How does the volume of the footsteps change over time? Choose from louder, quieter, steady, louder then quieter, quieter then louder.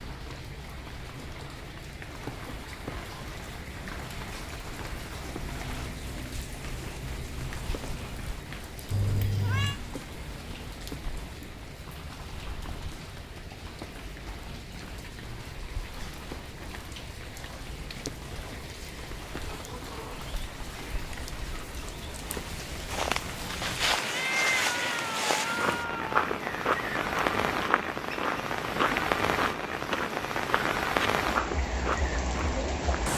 steady.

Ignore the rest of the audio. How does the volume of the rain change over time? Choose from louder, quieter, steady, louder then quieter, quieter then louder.
louder.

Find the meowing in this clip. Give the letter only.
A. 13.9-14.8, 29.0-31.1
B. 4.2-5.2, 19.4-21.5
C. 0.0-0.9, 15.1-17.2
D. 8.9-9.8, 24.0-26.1
D.